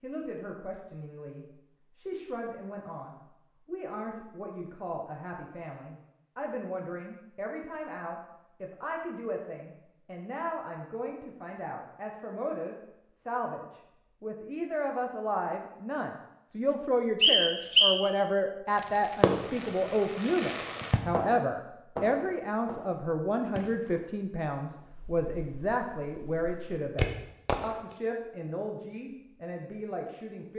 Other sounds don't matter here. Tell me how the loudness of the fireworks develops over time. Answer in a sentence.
The volume of the fireworks goes down, then up.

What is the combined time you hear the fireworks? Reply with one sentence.
The fireworks can be heard for 9 seconds in total.